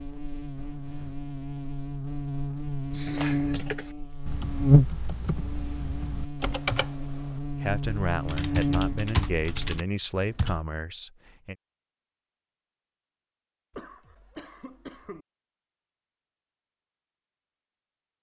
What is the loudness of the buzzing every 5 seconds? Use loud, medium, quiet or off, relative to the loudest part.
loud, medium, off, off.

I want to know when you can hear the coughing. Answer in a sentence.
You can hear the coughing from 0.6 to 1.2 s and from 13.7 to 15.2 s.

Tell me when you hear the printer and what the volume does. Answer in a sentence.
The printer can't be heard in this clip.